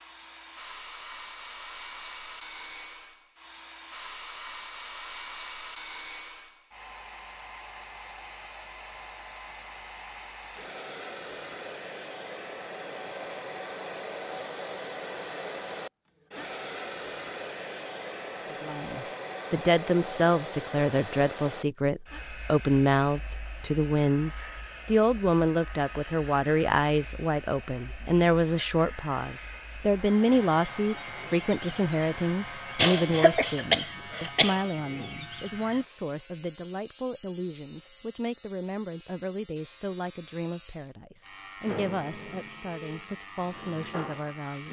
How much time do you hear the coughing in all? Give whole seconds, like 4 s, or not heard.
2 s.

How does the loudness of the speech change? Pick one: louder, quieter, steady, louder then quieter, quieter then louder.
quieter.